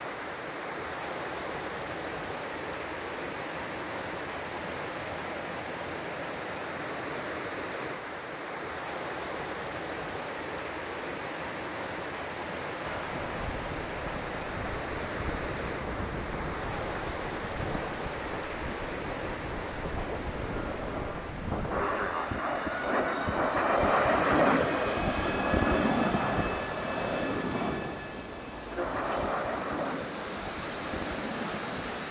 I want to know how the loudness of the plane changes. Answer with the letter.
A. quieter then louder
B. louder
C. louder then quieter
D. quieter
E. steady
C.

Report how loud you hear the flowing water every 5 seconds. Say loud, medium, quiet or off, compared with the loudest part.
loud, loud, loud, loud, medium, medium, loud.